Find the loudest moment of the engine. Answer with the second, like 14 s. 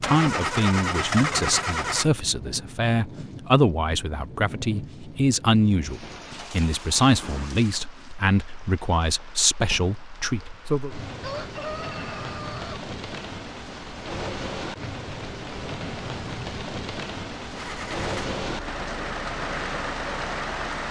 1 s.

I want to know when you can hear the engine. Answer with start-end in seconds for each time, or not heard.
0.0-2.1, 17.6-20.8.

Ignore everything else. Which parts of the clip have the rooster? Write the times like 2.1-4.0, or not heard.
11.2-12.8.